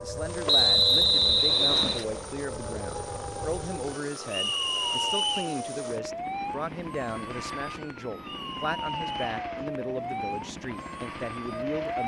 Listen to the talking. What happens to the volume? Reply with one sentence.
The volume of the talking stays about the same.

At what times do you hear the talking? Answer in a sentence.
The talking can be heard from 0.0 to 12.0 s.